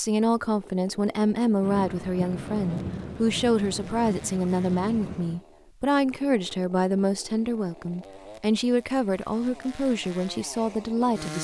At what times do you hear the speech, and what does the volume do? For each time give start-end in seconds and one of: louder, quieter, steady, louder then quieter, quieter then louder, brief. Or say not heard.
0.0-11.3 steady.